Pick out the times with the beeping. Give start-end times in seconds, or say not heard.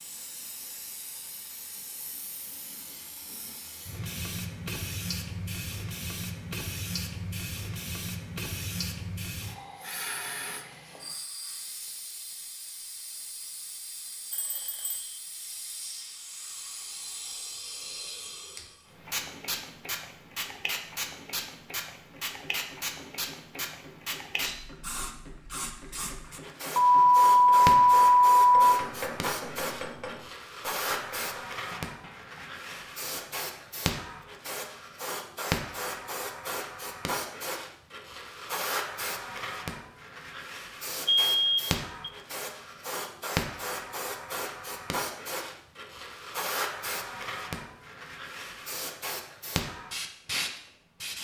14.3-15.2, 26.8-28.7, 41.0-42.1.